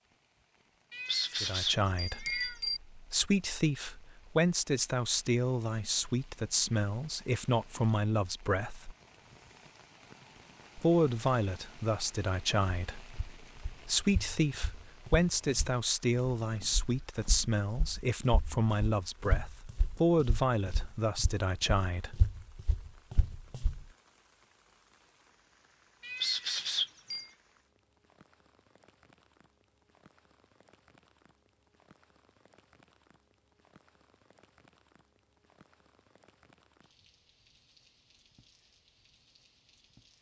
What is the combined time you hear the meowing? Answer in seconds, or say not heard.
3 s.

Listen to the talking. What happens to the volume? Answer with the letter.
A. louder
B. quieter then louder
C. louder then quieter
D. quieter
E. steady
E.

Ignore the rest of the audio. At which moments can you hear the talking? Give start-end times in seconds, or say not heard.
1.4-8.9, 10.8-22.3.